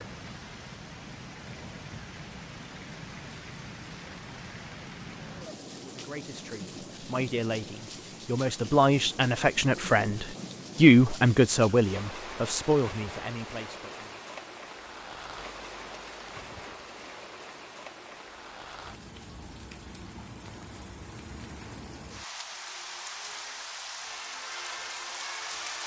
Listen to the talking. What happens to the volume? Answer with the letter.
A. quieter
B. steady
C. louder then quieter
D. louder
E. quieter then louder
C.